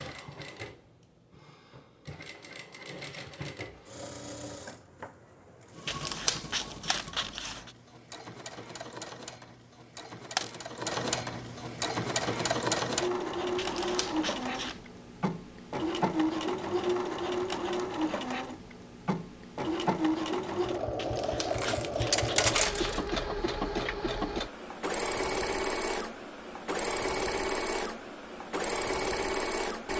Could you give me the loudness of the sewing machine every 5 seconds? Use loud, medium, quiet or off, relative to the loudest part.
quiet, quiet, loud, loud, loud, loud.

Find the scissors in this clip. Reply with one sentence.
The scissors can be heard from 5.8 to 7.7 s, from 13.6 to 14.8 s and from 20.9 to 23.0 s.